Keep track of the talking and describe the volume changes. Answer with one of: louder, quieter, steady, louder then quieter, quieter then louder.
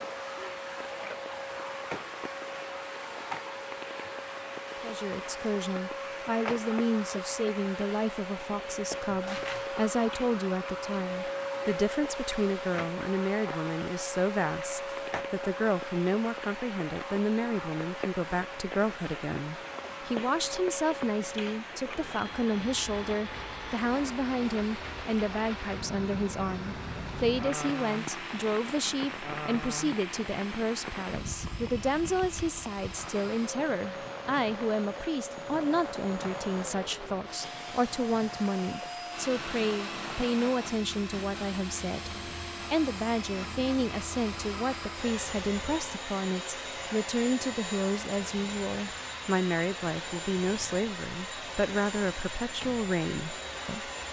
steady.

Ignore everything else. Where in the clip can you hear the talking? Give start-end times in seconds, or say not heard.
4.8-53.9.